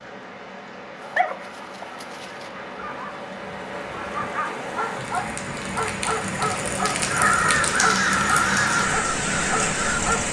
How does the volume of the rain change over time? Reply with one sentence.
The volume of the rain goes up.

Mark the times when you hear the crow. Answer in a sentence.
You can hear the crow from 7.0 to 10.0 s.